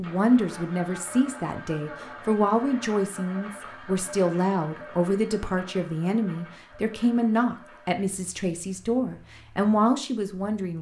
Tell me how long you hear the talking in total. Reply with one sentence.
The talking can be heard for 11 seconds in total.